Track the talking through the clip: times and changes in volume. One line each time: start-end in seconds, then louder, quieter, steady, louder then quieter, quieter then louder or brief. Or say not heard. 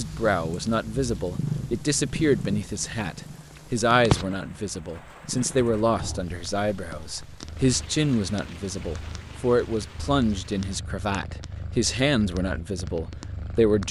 0.0-13.8 steady.